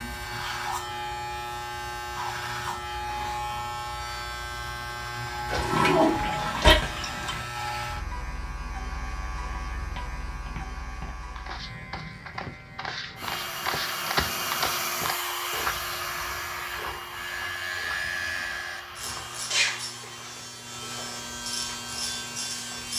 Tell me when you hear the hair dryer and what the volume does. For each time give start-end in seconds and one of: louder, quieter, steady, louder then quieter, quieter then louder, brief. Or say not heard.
13.2-20.4 quieter.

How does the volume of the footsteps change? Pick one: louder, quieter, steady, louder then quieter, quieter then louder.
louder then quieter.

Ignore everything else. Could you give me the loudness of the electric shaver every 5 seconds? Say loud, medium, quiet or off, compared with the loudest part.
loud, loud, medium, loud, loud.